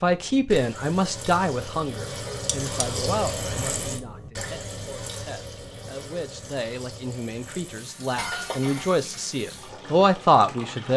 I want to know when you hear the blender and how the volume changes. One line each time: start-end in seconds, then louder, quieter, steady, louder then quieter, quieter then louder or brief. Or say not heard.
not heard.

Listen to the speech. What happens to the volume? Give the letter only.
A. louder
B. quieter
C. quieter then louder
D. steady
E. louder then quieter
C.